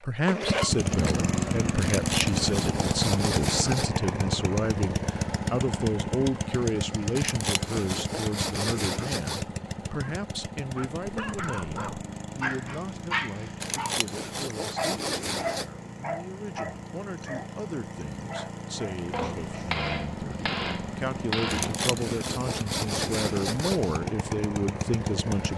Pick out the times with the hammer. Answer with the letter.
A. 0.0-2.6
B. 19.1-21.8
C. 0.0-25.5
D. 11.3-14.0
B.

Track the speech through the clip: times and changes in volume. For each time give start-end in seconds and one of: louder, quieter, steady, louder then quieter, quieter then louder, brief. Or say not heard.
0.0-25.5 quieter then louder.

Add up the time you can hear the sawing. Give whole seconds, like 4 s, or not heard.
9 s.